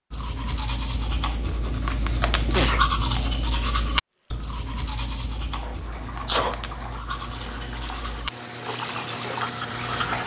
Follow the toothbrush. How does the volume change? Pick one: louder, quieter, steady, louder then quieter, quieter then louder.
louder then quieter.